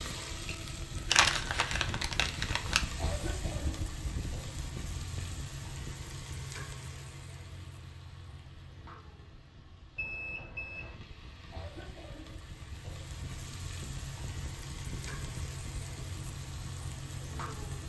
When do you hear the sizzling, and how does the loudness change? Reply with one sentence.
The sizzling can be heard from 0.0 to 17.8 s, getting quieter then louder.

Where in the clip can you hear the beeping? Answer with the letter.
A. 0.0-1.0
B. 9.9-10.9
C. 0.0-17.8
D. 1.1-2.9
B.